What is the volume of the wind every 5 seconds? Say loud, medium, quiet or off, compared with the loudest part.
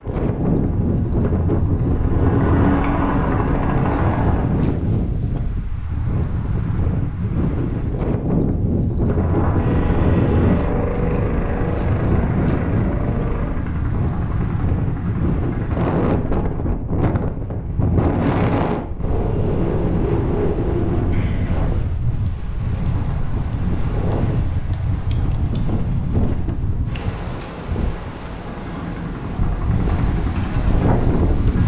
loud, loud, loud, loud, loud, medium, loud.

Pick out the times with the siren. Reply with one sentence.
You can't hear the siren here.